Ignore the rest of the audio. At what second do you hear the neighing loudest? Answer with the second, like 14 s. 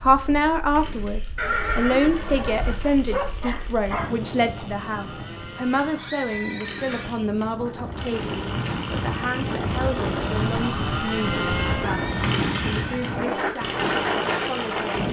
2 s.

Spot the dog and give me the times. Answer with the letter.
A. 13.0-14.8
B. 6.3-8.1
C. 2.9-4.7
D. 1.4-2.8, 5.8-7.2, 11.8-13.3
C.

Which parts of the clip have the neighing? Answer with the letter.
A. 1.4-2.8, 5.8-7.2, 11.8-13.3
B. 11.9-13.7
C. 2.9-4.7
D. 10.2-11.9
A.